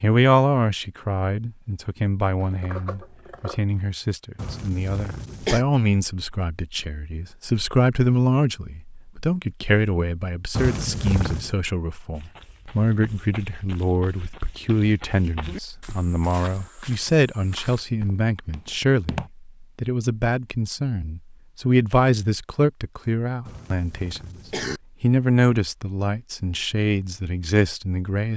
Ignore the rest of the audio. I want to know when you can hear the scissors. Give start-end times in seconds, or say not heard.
2.4-3.6.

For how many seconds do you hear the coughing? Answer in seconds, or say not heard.
4 s.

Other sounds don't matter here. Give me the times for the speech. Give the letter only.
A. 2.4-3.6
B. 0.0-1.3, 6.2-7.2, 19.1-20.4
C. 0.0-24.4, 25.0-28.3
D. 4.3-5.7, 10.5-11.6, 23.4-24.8
C.